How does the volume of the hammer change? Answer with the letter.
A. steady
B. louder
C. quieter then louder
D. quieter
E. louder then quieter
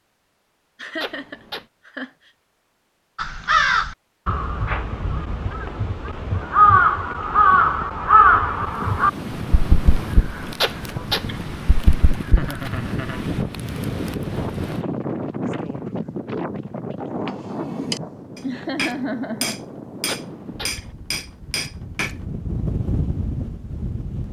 A.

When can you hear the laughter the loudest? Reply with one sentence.
The volume of the laughter peaks at 19 seconds.